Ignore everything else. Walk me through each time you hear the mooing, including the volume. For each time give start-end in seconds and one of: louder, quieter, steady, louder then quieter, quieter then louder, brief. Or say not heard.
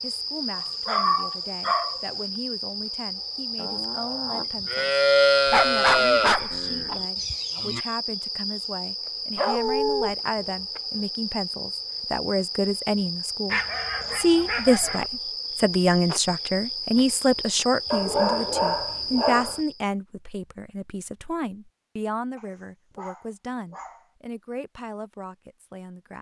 3.5-7.8 louder then quieter.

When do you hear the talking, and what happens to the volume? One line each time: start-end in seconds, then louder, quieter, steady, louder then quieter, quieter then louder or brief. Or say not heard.
0.0-26.1 louder then quieter.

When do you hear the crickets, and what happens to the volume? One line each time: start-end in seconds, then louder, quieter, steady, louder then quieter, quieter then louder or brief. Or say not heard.
0.0-19.9 steady.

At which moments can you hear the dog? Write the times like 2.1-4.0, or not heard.
0.6-2.0, 5.5-7.0, 9.3-10.1, 13.5-15.1, 17.9-19.6, 22.4-24.1.